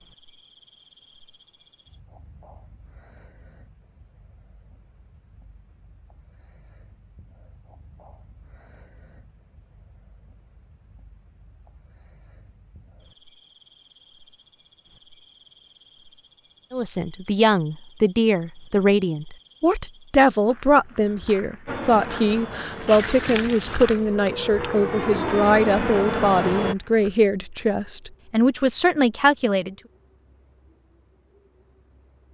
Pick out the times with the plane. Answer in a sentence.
You can hear the plane from 21.6 to 26.8 s.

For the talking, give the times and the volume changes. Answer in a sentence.
The talking can be heard from 16.7 to 29.8 s, at a steady volume.